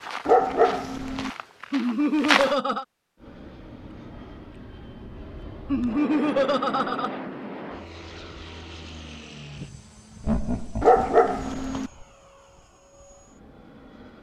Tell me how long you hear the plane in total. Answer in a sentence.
You can hear the plane for 11 seconds altogether.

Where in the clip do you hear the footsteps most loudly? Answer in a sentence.
The volume of the footsteps peaks at 2 seconds.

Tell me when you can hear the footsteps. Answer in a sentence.
You can hear the footsteps from 0.0 to 2.5 s.